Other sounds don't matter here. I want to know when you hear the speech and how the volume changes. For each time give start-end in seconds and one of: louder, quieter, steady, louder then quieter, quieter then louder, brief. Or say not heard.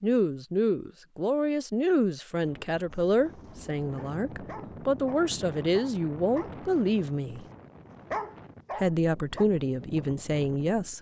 0.0-7.5 steady
8.8-10.9 brief.